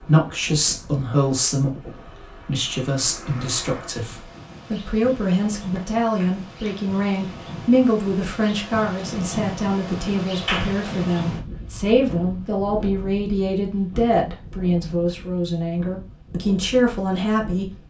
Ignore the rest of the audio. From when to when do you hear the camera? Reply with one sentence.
You can't hear the camera here.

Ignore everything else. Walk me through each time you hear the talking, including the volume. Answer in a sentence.
You can hear the talking from 0.0 to 17.8 s, at a steady volume.